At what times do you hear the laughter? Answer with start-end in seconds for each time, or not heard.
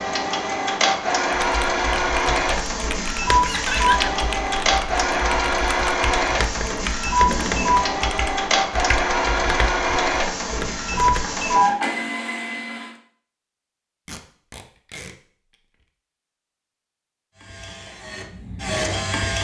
3.4-4.1.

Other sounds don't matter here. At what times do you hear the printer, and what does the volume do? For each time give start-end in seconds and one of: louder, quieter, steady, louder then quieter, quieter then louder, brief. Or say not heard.
0.0-12.9 steady
17.4-19.3 brief.